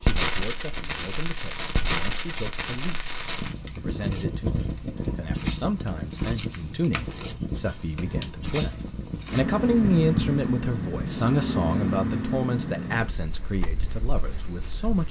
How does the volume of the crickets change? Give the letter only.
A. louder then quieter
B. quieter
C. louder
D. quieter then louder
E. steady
C.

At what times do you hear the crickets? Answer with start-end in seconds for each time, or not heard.
0.0-15.0.